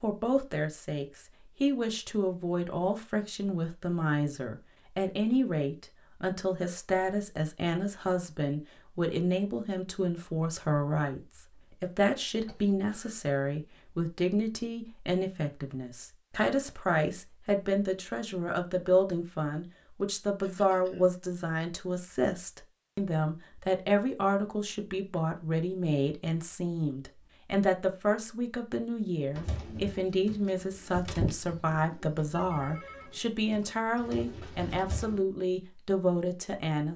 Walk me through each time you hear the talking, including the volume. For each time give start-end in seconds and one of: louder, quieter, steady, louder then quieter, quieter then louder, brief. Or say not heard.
0.0-36.9 steady.